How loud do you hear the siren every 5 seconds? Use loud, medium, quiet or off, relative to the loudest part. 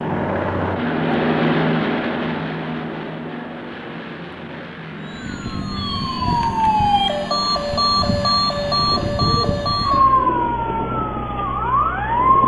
off, loud, loud.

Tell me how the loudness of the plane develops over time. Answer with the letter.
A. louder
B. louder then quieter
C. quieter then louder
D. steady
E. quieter
E.